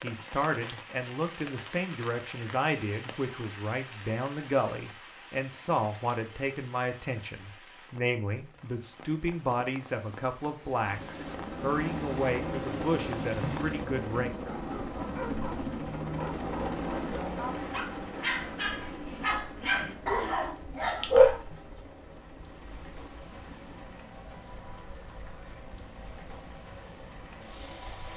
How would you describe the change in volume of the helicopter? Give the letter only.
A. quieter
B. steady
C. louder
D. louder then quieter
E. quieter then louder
A.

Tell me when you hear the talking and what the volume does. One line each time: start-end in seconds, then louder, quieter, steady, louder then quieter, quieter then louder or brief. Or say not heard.
0.0-14.3 steady.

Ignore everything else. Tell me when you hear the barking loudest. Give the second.
21 s.